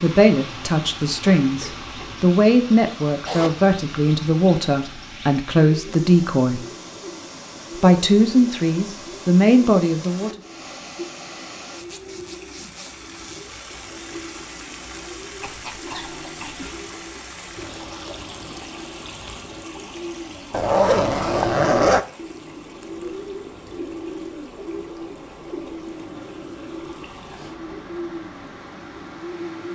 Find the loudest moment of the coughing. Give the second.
16 s.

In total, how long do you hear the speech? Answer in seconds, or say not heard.
9 s.